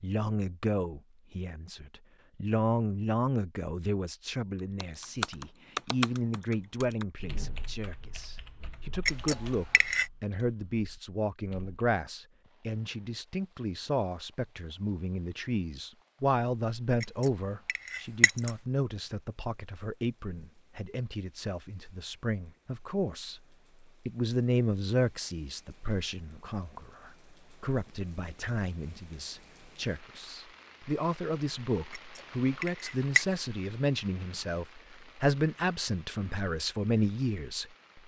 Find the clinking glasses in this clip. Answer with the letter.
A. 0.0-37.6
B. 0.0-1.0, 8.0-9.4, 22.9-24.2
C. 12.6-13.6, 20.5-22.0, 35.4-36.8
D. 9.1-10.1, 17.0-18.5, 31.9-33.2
D.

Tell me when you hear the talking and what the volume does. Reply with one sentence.
The talking can be heard from 0.0 to 37.6 s, at a steady volume.